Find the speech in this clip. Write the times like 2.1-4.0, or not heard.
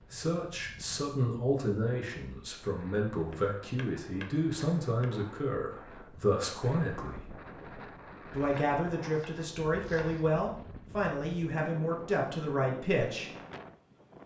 0.1-7.2, 8.3-13.3.